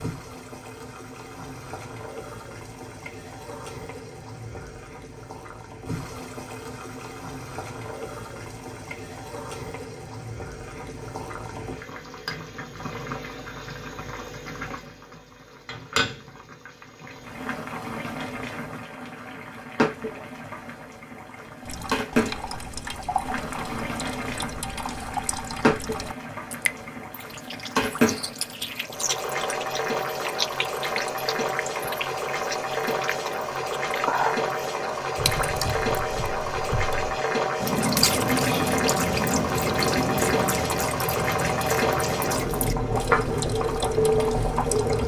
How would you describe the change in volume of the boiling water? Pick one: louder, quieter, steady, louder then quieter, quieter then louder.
louder.